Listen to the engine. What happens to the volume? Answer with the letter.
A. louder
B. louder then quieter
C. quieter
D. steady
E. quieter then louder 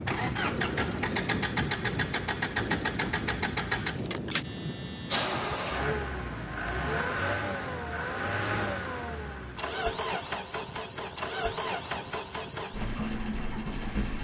D.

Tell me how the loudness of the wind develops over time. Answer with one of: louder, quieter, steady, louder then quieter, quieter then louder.
quieter.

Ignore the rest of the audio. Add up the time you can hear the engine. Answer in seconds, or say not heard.
14 s.